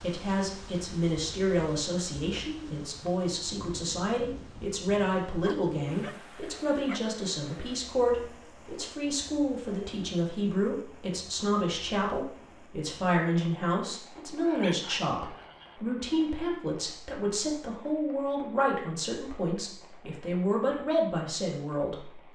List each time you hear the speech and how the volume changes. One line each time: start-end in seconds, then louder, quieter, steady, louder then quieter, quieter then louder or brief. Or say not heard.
0.0-22.2 steady.